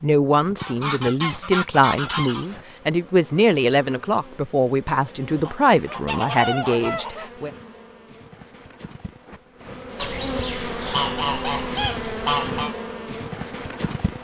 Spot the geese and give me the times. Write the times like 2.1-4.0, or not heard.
0.6-2.5, 5.5-7.3, 9.9-12.8.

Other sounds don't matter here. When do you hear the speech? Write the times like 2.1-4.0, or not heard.
0.0-7.5.